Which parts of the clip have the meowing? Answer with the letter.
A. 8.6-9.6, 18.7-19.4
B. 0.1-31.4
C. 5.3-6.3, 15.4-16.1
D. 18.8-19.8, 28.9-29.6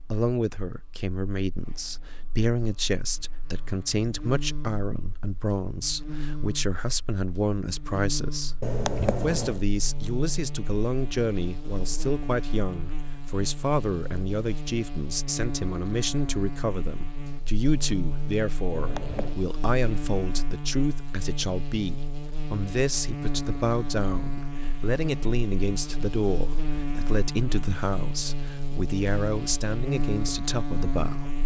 A.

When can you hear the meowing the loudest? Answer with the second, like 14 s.
9 s.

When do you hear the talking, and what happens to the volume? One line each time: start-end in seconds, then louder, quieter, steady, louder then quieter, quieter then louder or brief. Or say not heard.
0.1-31.4 steady.